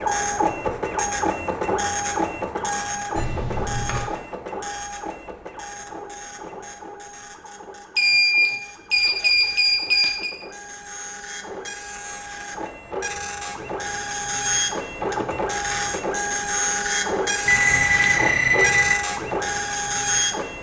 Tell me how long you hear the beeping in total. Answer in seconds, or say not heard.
5 s.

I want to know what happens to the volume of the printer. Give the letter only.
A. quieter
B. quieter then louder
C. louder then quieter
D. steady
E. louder
B.